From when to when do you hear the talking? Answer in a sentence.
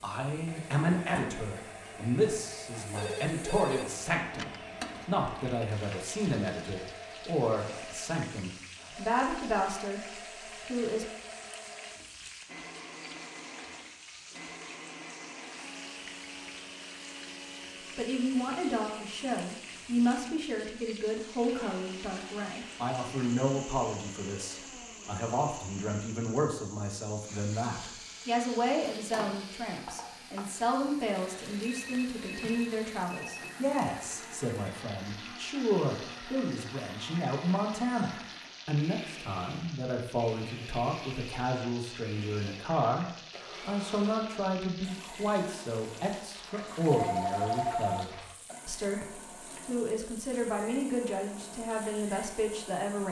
The talking can be heard from 0.0 to 11.1 s and from 17.9 to 53.0 s.